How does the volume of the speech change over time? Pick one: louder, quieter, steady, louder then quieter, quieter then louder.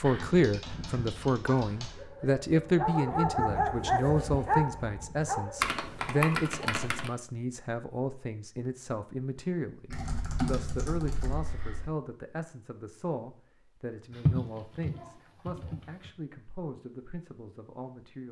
quieter.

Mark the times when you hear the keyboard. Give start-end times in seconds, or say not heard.
0.0-2.0, 5.6-7.1, 9.9-11.9, 14.1-16.1.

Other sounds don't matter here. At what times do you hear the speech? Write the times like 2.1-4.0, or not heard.
0.0-18.2.